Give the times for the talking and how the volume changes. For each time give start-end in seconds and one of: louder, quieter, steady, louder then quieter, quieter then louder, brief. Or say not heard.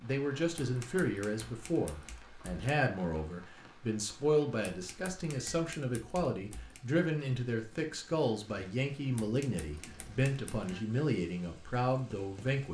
0.0-12.6 steady.